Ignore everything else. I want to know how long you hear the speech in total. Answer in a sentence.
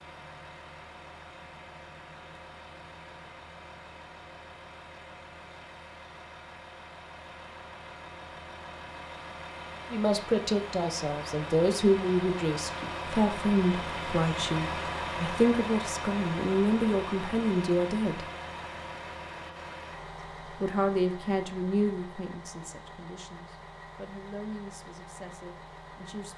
You can hear the speech for 14 seconds altogether.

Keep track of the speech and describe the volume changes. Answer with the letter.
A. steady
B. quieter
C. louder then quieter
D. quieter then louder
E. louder
B.